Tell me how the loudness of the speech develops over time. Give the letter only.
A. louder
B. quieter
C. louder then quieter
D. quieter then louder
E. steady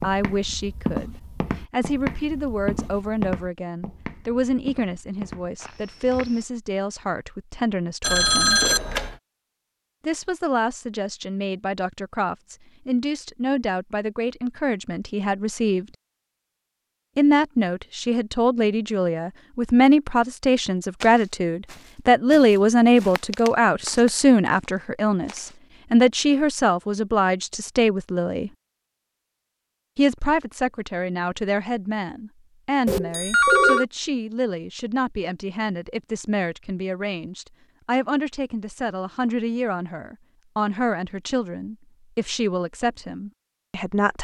C.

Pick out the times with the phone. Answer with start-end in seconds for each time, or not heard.
8.0-9.2, 32.9-33.9.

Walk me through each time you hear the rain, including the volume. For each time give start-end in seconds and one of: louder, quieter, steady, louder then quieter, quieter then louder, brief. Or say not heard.
not heard.